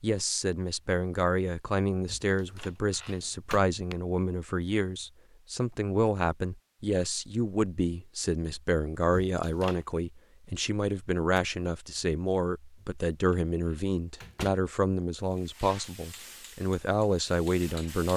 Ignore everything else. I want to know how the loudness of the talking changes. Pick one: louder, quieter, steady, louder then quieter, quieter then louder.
steady.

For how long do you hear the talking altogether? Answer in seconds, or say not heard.
18 s.